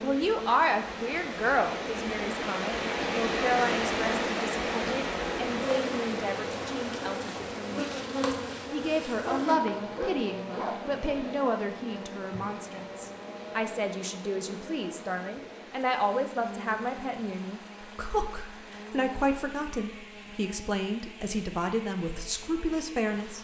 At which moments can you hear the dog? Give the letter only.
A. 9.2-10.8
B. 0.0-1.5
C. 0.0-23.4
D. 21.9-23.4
A.